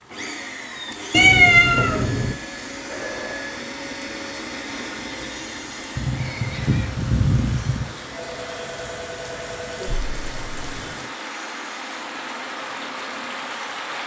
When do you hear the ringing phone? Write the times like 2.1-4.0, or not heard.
1.9-3.6, 8.1-9.9.